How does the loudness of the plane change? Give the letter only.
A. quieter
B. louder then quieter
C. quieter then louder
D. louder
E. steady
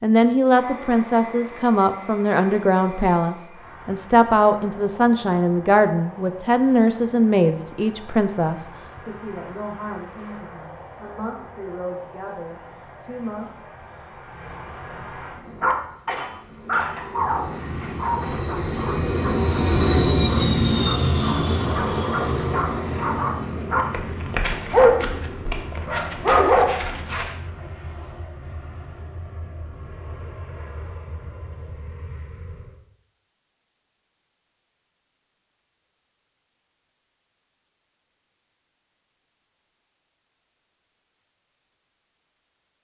B.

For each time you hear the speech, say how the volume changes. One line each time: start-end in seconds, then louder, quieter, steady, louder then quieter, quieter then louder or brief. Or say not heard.
0.0-13.5 quieter.